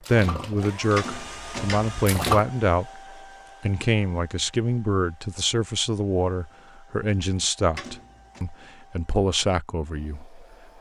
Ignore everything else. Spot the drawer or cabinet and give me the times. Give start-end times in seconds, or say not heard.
0.9-2.0, 7.8-8.4.